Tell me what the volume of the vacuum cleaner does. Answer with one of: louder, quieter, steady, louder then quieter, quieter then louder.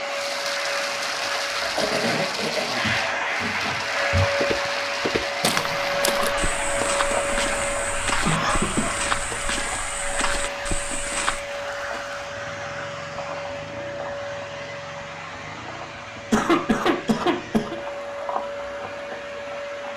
quieter.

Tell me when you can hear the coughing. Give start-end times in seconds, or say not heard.
1.8-2.9, 8.2-8.9, 16.1-17.8.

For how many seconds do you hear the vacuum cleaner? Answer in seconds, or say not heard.
20 s.